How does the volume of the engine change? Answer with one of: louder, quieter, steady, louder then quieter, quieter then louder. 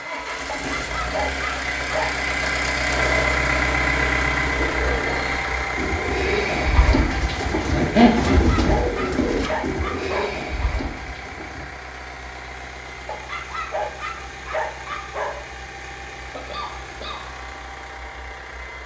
quieter.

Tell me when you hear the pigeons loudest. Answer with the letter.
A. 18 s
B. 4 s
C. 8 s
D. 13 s
C.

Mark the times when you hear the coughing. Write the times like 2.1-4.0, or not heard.
16.2-17.2.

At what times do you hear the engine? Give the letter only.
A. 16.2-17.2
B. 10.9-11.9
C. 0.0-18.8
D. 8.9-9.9
C.